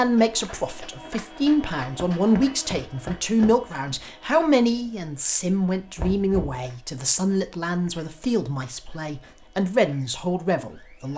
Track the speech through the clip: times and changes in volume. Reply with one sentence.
You can hear the speech from 0.0 to 11.1 s, at a steady volume.